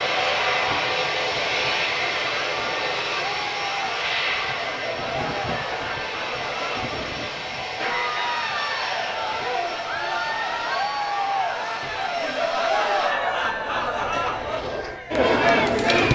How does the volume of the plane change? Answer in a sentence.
The loudness of the plane goes down.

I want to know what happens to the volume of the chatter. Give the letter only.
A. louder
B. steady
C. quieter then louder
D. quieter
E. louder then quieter
A.